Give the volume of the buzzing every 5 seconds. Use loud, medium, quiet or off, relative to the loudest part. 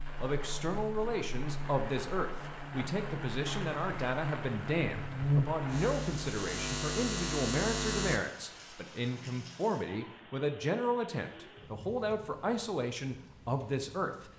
medium, loud, off.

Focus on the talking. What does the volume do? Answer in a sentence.
The loudness of the talking stays about the same.